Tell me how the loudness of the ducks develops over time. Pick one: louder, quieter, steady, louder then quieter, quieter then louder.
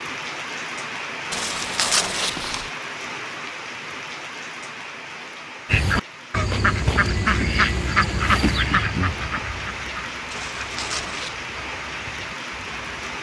quieter.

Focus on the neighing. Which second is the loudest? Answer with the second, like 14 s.
2 s.